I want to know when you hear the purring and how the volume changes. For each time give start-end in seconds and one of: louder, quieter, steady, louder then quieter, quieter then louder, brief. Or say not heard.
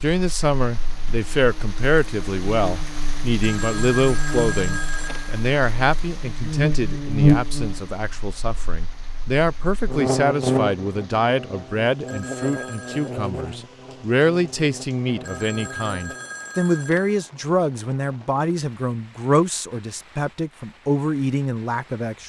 not heard.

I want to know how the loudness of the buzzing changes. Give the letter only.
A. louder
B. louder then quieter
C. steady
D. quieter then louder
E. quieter
B.